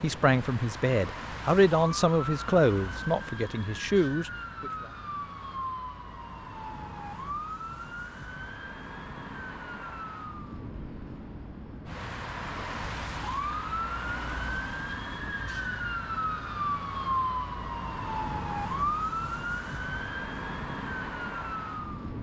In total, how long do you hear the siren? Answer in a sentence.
The siren can be heard for 22 seconds in total.